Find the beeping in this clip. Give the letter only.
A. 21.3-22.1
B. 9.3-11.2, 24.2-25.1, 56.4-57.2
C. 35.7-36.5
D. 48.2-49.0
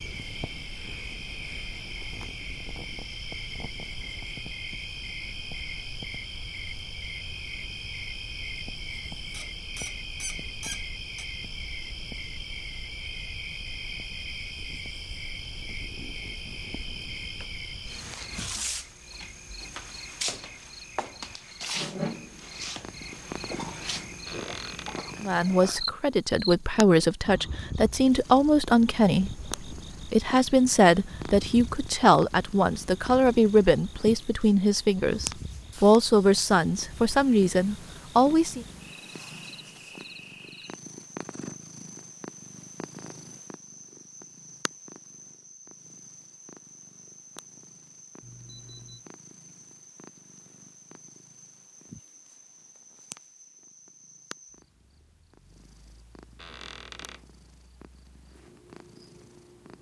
D.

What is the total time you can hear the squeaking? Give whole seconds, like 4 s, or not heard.
4 s.